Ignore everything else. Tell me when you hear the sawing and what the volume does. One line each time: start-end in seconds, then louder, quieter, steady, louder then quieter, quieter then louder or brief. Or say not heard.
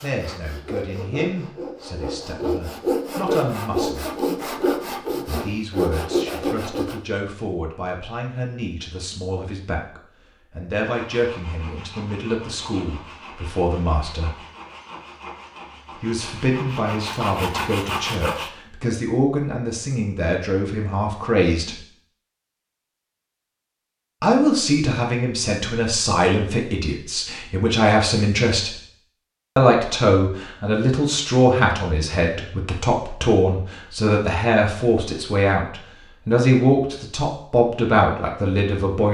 0.0-7.0 louder
10.8-18.5 louder.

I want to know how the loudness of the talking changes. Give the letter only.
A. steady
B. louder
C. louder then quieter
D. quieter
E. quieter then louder
B.